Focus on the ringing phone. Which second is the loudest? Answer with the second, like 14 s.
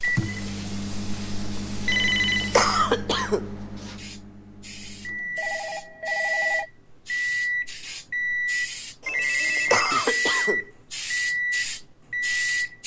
2 s.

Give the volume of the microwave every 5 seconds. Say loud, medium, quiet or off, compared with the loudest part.
medium, loud, loud.